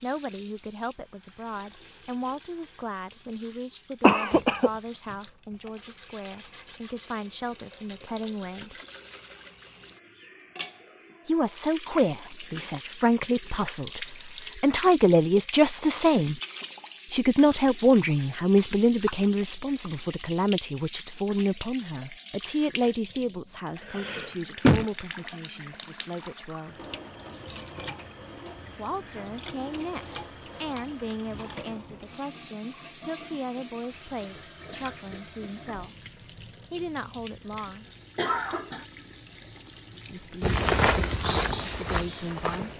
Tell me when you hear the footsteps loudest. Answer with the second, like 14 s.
41 s.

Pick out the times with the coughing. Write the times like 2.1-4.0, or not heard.
4.0-4.7, 23.8-24.9, 38.1-38.9.